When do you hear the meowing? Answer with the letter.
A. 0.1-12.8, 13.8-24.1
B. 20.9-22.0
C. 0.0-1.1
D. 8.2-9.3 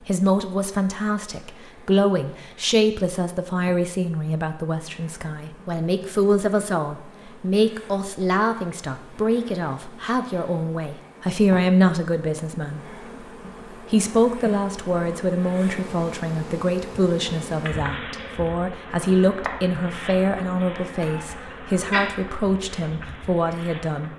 B.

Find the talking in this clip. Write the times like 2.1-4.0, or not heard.
0.1-12.8, 13.8-24.1.